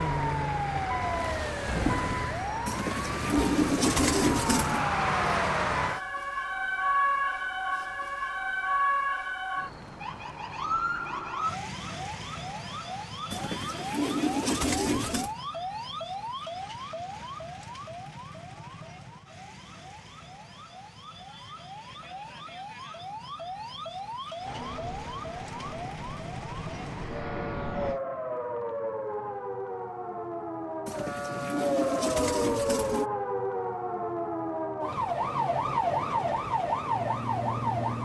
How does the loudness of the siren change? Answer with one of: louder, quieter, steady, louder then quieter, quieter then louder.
quieter then louder.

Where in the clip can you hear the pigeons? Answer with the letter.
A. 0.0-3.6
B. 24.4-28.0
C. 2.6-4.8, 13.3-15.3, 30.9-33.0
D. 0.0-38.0
C.